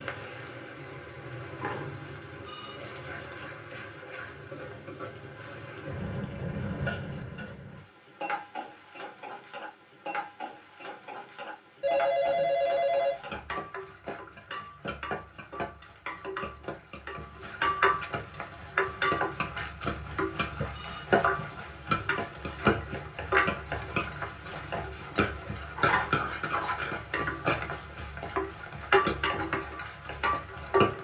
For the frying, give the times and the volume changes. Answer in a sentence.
The frying can be heard from 0.0 to 30.9 s, getting louder.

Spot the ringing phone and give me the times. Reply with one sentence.
You can hear the ringing phone from 2.5 to 3.4 s, from 11.8 to 13.3 s and from 20.7 to 21.6 s.